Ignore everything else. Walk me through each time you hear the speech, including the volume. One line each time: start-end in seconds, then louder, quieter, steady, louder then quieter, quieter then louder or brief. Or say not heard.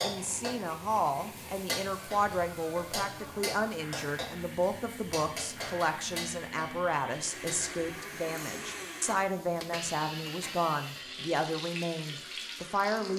0.0-13.1 steady.